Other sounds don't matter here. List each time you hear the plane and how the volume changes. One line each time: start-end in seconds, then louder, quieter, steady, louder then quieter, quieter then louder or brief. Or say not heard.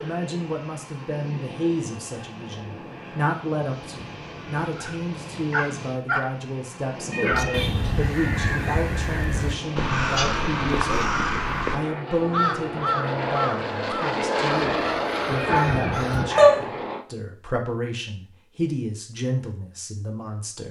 0.0-17.1 louder.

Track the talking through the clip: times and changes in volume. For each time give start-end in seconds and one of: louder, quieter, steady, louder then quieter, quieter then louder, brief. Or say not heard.
0.0-20.6 steady.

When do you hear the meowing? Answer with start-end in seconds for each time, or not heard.
7.1-8.0, 15.4-16.6.